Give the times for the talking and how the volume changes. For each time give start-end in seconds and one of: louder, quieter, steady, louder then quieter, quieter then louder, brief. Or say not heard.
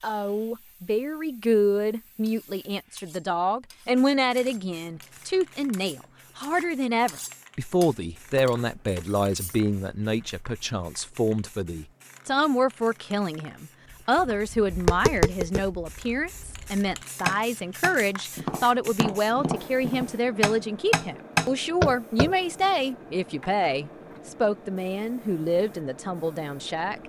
0.0-27.0 steady.